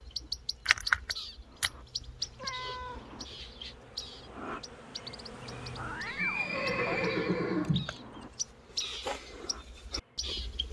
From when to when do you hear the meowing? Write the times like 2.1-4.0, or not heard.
2.1-3.8, 5.8-7.1.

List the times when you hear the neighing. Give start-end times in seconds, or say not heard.
6.2-8.0.